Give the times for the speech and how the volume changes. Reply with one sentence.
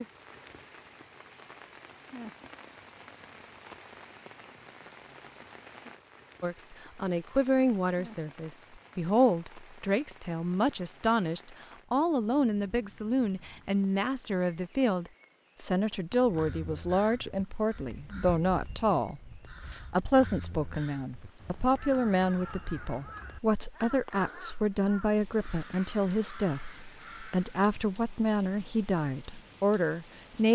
You can hear the speech from 6.4 to 30.5 s, at a steady volume.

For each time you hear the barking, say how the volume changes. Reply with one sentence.
The barking can't be heard in this clip.